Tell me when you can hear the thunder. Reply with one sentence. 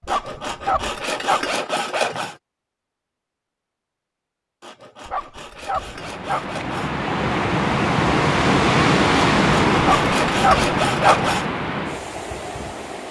The thunder can't be heard in this clip.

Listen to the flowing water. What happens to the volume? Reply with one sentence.
The loudness of the flowing water goes up, then down.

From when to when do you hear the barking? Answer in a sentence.
The barking can be heard from 0.0 to 1.5 s, from 5.0 to 6.5 s and from 9.8 to 11.3 s.